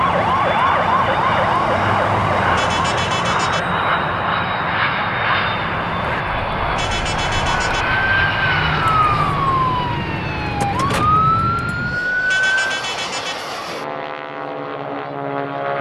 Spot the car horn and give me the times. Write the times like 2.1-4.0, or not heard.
2.5-3.7, 6.8-7.9, 12.2-13.4.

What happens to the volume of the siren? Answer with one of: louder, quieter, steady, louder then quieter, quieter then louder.
quieter then louder.